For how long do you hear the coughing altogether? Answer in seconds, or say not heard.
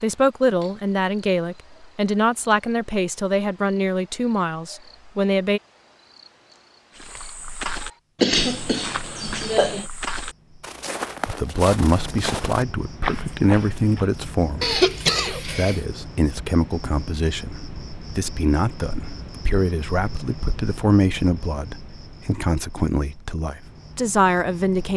3 s.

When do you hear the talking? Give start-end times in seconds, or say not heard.
0.0-5.6, 11.2-14.8, 15.6-24.9.